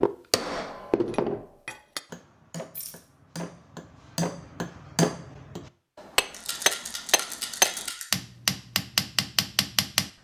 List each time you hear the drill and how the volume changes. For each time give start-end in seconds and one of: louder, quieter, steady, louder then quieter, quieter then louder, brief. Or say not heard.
not heard.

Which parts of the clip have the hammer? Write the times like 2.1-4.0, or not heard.
0.0-10.1.